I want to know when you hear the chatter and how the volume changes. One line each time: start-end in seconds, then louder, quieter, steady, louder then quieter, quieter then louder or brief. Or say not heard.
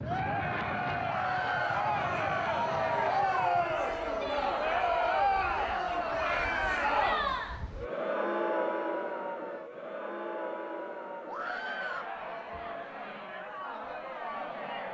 0.0-14.9 quieter.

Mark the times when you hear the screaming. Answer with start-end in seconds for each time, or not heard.
1.1-1.9, 6.2-6.8, 11.2-12.1.